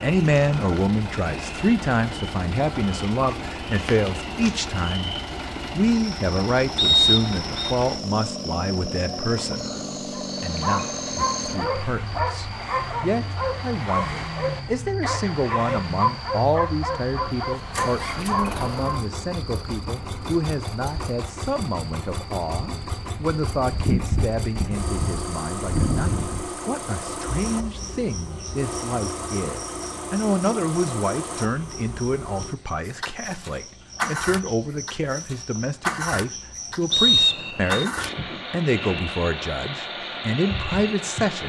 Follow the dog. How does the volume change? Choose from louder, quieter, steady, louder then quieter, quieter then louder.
steady.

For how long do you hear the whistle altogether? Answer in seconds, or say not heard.
2 s.